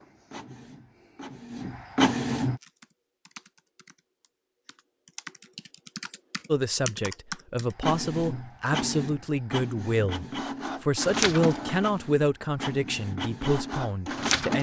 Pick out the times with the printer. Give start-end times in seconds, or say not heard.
0.0-2.6, 7.7-14.5.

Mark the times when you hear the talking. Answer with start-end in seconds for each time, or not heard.
6.5-14.5.